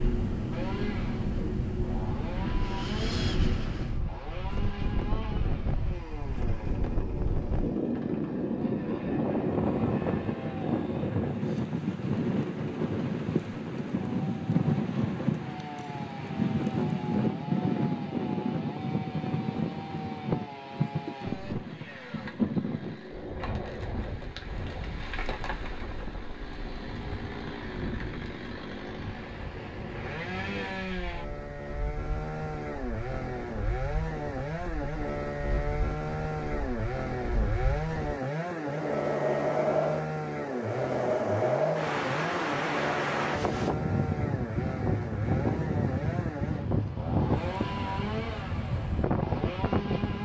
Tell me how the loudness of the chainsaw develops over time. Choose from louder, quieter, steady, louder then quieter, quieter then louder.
louder.